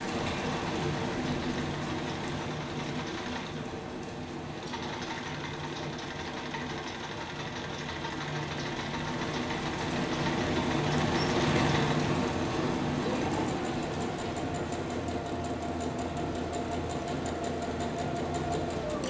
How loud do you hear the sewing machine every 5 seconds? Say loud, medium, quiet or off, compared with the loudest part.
medium, medium, loud, loud.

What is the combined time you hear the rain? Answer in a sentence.
The rain can be heard for 19 seconds in total.